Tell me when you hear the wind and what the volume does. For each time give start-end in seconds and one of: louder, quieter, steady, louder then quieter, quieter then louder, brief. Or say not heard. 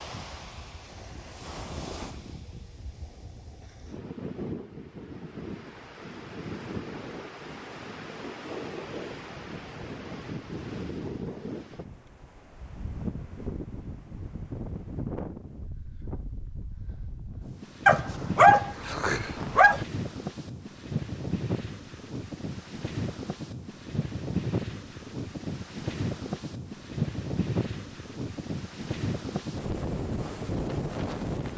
0.0-31.5 louder.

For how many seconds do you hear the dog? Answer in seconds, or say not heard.
2 s.